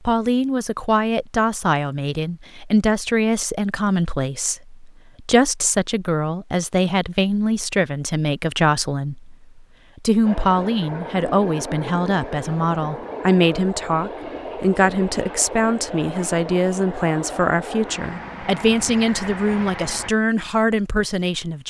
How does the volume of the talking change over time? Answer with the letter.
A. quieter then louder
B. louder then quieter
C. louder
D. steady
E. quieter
D.